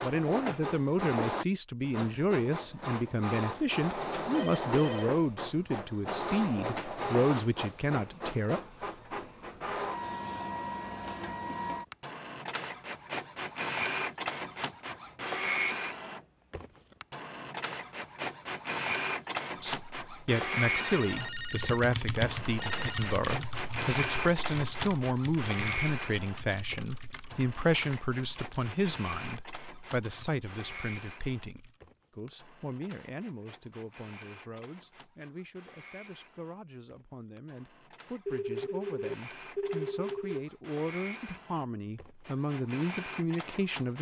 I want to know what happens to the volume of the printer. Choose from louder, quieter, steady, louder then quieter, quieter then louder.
quieter.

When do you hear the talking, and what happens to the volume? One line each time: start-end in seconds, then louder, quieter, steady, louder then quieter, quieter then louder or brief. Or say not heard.
0.0-8.6 steady
19.6-43.9 quieter then louder.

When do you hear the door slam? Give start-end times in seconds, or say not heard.
not heard.